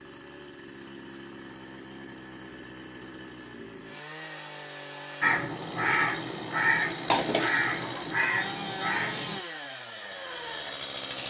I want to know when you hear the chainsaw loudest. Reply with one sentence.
The volume of the chainsaw peaks at 9 seconds.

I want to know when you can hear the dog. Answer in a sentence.
You can't hear the dog here.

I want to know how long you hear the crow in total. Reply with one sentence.
You can hear the crow for 4 seconds altogether.